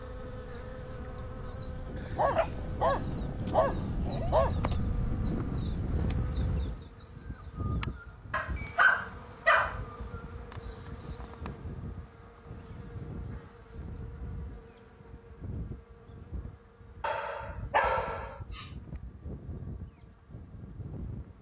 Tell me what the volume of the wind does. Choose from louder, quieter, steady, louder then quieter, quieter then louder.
quieter.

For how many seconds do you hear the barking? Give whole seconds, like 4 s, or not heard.
6 s.